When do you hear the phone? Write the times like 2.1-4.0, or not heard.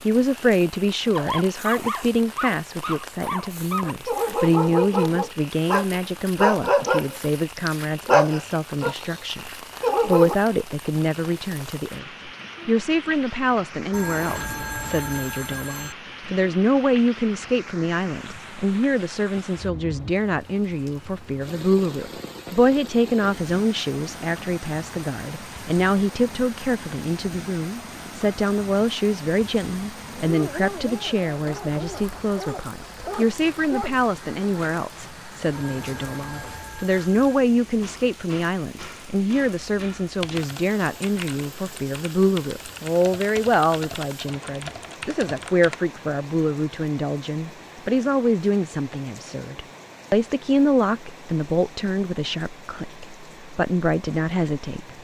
13.9-15.9, 35.5-37.4.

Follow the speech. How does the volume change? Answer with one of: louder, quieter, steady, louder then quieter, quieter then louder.
steady.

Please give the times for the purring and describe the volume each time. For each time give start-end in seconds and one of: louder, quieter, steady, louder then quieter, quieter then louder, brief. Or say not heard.
not heard.